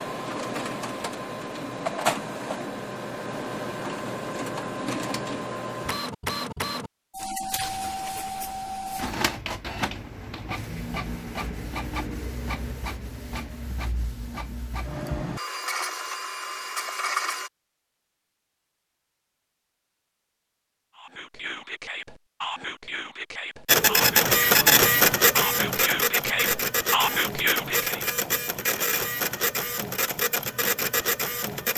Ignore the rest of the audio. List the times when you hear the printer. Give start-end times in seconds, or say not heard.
0.0-17.5, 23.6-31.7.